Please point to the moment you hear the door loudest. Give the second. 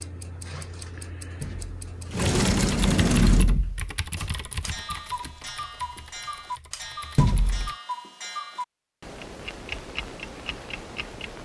3 s.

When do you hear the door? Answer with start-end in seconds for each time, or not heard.
1.4-3.9, 7.2-7.7.